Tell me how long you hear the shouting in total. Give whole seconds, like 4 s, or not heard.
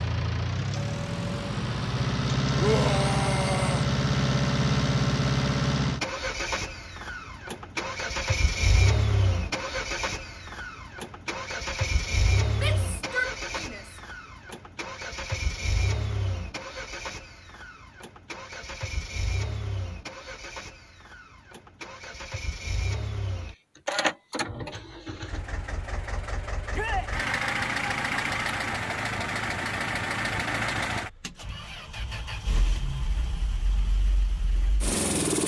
3 s.